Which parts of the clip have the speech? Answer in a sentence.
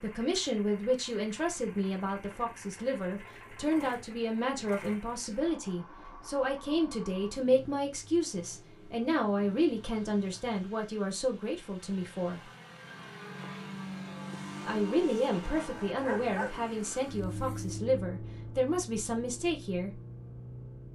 You can hear the speech from 0.0 to 12.4 s and from 14.7 to 19.9 s.